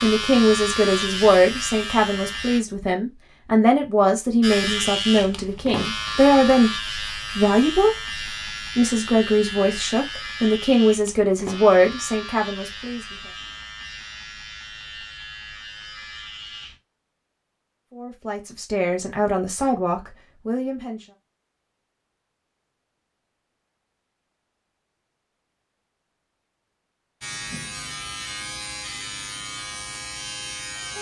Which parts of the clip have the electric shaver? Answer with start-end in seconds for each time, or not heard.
0.0-2.6, 4.4-16.8, 27.2-30.9.